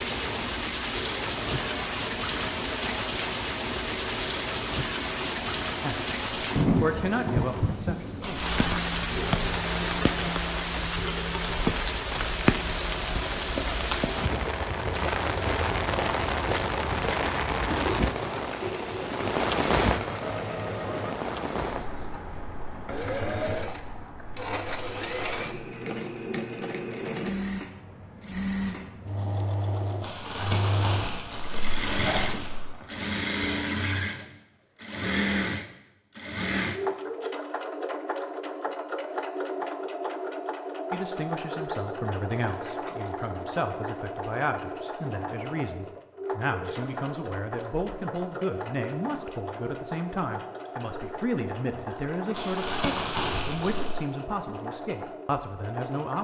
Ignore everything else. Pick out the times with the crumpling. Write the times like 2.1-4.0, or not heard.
8.2-8.8, 30.0-32.7, 52.3-54.0.